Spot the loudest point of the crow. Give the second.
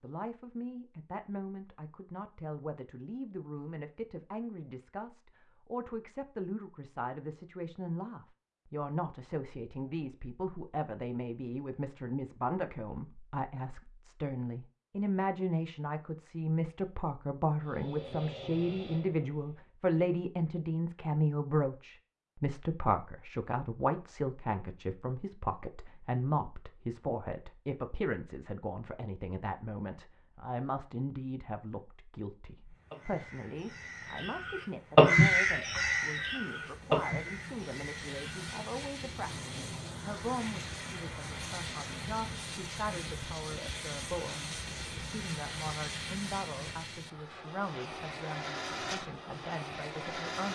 35 s.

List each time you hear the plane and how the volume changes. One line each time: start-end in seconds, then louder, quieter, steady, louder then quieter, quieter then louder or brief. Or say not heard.
17.6-19.7 brief
32.6-50.4 louder.